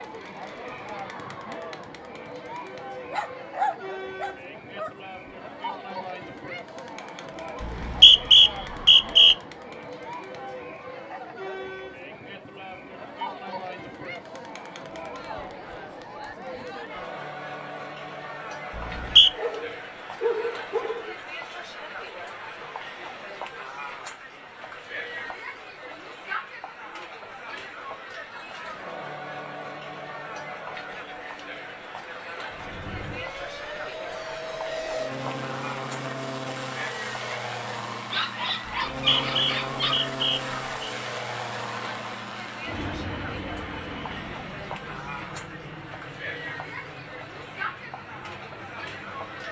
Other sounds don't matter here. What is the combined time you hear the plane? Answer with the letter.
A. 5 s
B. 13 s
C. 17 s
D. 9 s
C.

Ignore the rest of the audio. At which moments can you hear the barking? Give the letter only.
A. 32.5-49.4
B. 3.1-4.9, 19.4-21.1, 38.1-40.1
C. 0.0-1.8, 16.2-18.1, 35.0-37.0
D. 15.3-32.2
B.